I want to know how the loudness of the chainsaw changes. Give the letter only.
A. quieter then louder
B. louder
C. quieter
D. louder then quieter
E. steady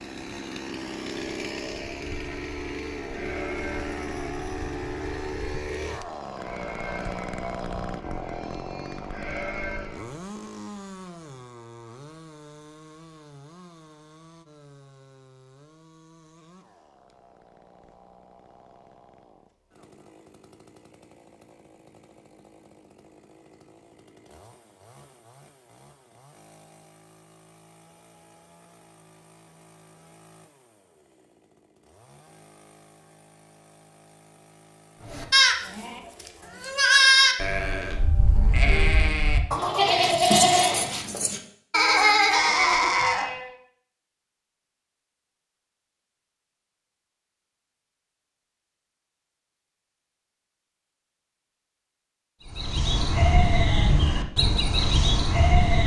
C.